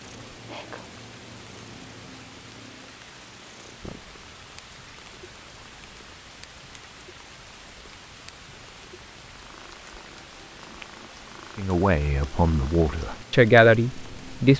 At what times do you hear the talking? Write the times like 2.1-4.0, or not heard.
11.6-14.5.